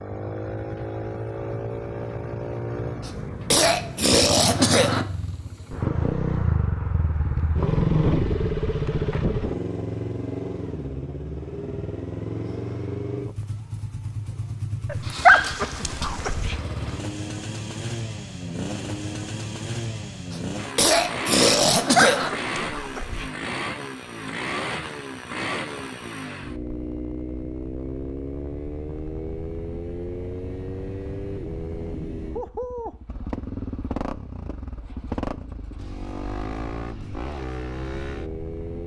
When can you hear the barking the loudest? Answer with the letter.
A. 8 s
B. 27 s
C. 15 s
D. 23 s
C.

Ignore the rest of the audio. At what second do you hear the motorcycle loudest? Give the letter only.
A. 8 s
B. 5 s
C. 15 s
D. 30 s
A.